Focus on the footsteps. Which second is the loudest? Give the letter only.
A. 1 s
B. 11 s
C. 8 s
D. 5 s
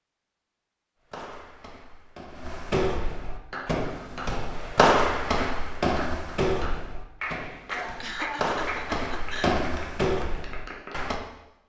D.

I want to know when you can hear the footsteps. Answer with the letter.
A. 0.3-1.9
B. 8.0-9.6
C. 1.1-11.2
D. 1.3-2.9
C.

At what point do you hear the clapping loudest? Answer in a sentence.
The loudest moment of the clapping is at 8 seconds.